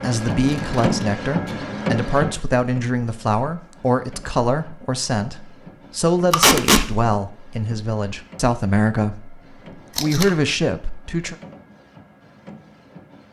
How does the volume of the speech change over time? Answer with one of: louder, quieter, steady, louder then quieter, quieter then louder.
steady.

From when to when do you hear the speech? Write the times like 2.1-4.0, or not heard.
0.0-11.3.